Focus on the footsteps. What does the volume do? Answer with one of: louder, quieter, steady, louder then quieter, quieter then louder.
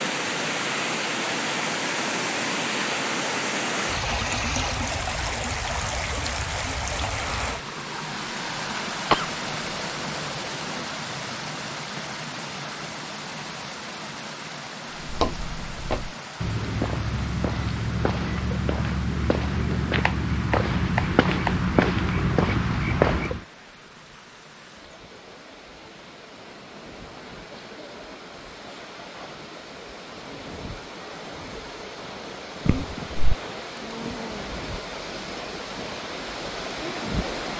louder.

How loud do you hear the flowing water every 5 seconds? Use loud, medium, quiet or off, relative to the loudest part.
loud, loud, medium, quiet, quiet, quiet, medium, medium.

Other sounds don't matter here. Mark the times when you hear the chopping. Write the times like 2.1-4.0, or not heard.
19.9-21.7.